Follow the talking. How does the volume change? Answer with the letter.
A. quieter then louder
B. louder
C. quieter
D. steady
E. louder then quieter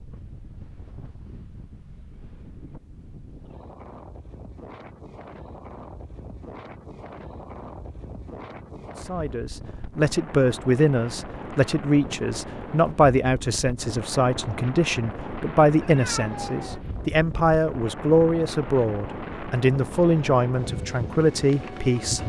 D.